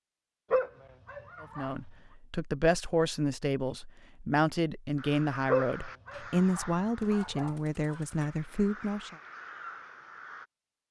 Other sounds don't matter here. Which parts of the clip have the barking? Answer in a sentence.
The barking can be heard from 0.5 to 1.8 s and from 5.5 to 7.5 s.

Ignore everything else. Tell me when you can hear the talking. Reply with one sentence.
The talking can be heard from 1.4 to 9.2 s.